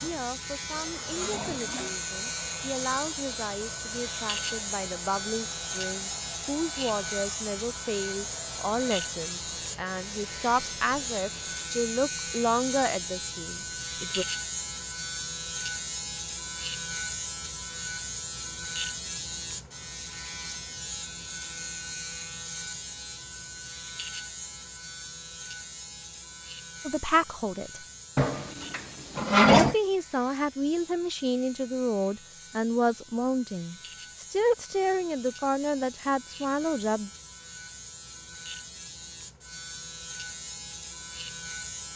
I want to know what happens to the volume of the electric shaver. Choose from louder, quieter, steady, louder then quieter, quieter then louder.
quieter.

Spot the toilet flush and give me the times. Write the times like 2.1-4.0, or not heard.
0.0-2.0, 28.1-29.8.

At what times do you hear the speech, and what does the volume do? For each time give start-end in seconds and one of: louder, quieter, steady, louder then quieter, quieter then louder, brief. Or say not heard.
0.0-14.2 louder
26.9-27.8 brief
29.5-37.1 steady.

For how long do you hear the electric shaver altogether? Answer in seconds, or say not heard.
42 s.